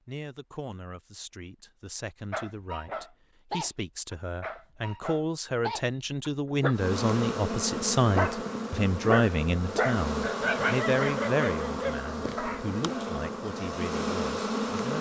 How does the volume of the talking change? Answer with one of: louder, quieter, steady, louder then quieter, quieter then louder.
louder then quieter.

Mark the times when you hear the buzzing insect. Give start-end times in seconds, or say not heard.
6.7-14.9.